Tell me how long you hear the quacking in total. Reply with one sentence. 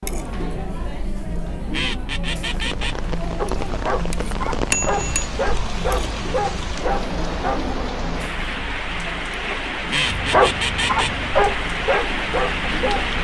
You can hear the quacking for 3 seconds altogether.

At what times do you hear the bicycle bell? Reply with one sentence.
You can hear the bicycle bell from 4.7 to 5.3 s.